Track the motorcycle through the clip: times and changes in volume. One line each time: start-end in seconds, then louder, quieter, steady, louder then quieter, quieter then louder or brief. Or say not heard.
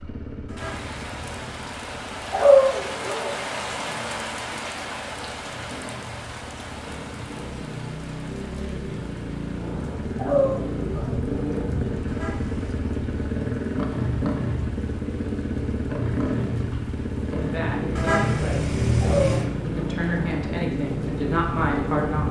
0.0-22.2 louder.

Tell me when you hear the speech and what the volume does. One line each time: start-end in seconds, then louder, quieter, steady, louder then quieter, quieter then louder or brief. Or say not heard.
17.4-22.2 louder.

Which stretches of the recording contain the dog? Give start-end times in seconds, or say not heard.
2.3-3.3, 10.2-11.2, 19.0-20.0.